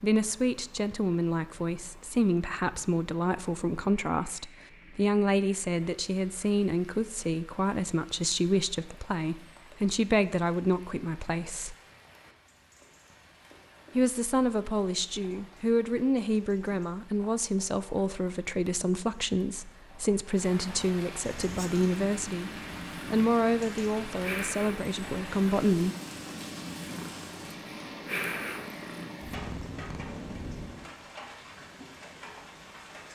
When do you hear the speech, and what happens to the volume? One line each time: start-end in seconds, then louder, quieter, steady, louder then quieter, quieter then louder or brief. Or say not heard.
0.0-11.8 steady
13.9-22.5 steady
23.1-25.9 brief.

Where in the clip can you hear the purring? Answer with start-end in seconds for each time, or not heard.
21.4-30.9.